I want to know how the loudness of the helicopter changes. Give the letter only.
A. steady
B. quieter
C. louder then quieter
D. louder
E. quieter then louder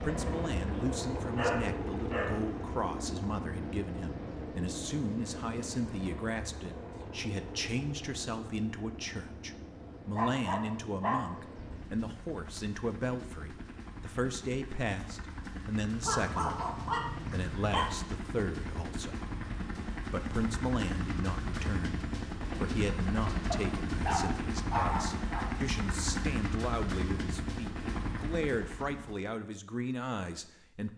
E.